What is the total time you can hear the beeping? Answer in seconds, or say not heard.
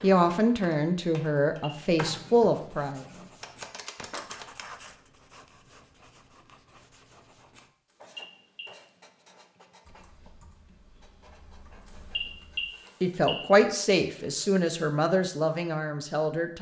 3 s.